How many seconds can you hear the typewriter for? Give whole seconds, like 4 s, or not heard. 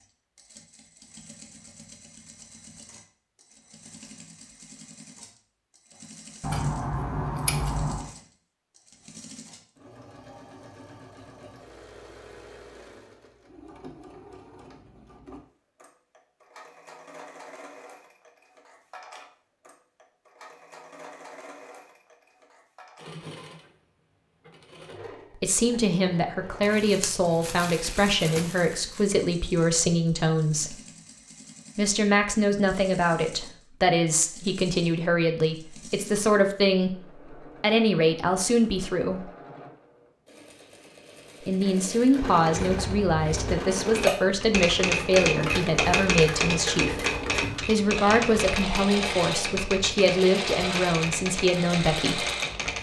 9 s.